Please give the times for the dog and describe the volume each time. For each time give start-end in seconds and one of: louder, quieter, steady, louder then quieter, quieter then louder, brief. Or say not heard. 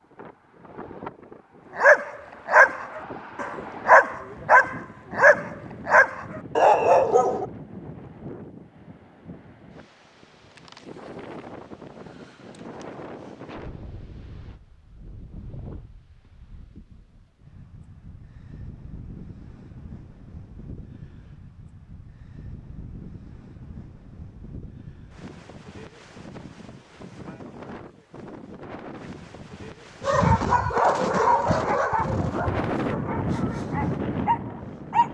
1.8-7.5 steady
30.0-35.0 quieter then louder.